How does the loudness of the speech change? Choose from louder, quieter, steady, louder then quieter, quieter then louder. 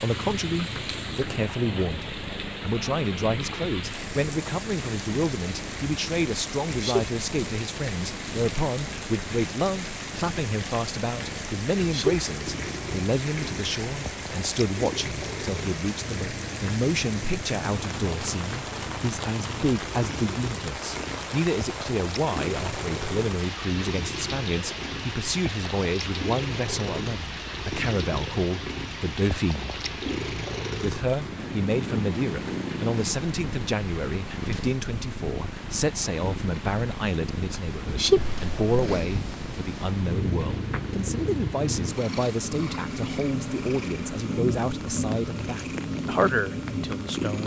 steady.